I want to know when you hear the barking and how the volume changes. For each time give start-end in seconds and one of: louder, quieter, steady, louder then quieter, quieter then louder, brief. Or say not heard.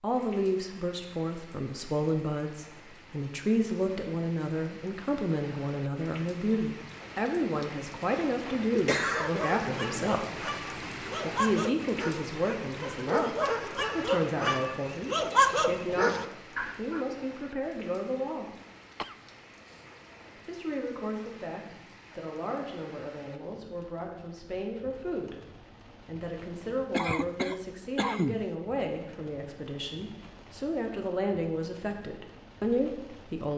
9.2-17.0 louder.